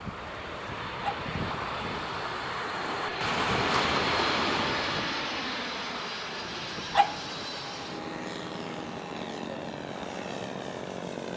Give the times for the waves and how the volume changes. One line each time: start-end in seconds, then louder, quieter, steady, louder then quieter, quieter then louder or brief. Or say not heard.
0.0-11.2 louder then quieter.